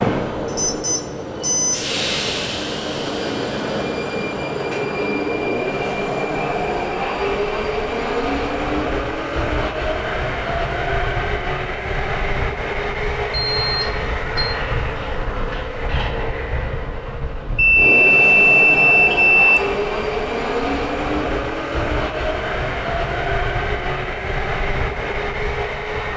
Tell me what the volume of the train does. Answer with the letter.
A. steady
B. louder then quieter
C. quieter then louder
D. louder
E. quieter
A.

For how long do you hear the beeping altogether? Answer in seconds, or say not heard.
5 s.